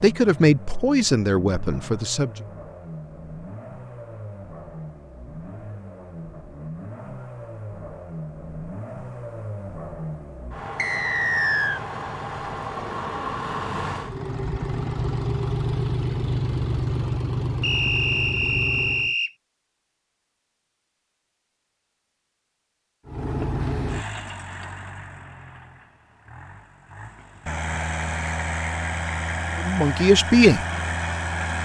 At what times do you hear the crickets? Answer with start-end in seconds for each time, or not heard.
not heard.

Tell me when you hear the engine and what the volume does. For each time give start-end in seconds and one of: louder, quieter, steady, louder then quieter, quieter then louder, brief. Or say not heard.
0.0-19.1 louder
23.1-31.6 quieter then louder.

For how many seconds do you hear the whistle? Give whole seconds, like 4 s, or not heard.
3 s.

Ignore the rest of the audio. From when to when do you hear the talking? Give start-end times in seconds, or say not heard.
0.0-2.3, 29.6-30.6.